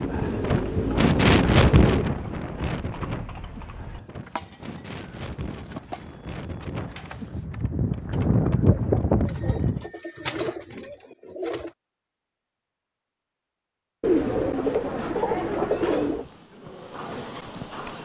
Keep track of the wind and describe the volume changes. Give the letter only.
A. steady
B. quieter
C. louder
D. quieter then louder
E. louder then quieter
D.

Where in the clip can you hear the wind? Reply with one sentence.
You can hear the wind from 0.0 to 9.8 s.